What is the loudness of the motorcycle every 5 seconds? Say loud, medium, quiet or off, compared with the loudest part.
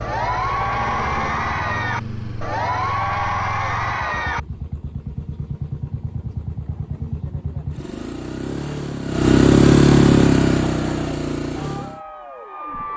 quiet, loud, loud.